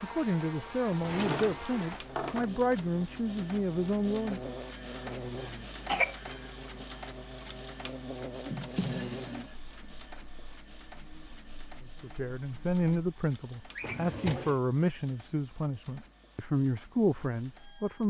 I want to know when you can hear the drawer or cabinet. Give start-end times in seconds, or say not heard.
0.9-2.5, 8.4-9.6, 13.8-14.6.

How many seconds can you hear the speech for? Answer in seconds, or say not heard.
11 s.